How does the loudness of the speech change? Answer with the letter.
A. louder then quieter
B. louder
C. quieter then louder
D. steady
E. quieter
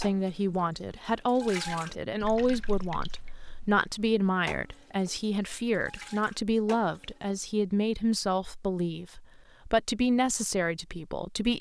D.